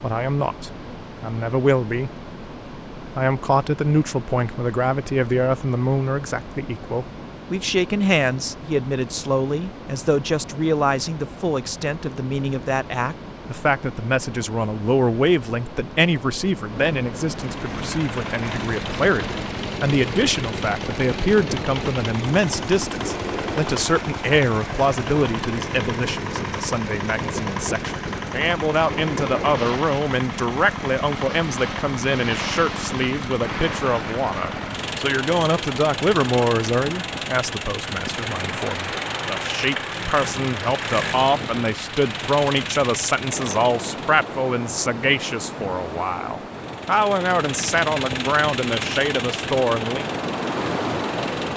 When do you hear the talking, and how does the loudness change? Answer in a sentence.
You can hear the talking briefly from 0.0 to 2.1 s; and from 3.0 to 50.1 s, at a steady volume.